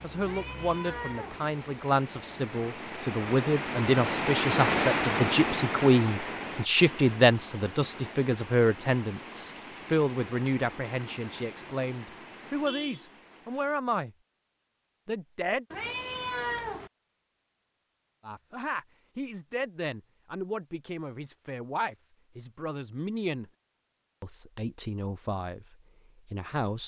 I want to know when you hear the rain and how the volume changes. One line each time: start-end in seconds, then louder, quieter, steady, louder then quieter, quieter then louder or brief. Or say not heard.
0.0-13.8 louder then quieter.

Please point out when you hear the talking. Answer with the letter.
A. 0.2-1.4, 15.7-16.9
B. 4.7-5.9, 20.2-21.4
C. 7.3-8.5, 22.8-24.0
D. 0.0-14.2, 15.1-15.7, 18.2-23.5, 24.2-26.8
D.